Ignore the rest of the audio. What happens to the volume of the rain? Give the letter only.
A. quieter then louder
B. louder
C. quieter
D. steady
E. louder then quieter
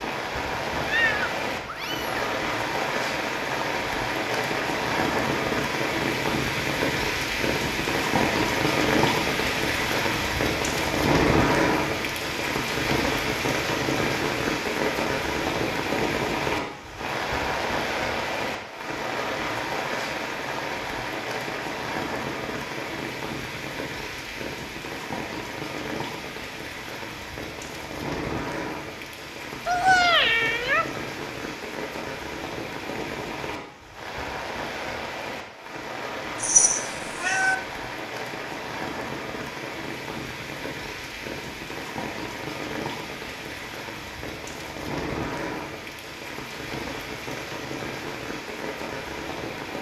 C.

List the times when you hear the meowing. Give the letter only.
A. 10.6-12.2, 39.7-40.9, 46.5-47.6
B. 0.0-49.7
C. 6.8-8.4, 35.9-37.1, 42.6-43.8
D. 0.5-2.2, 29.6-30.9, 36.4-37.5
D.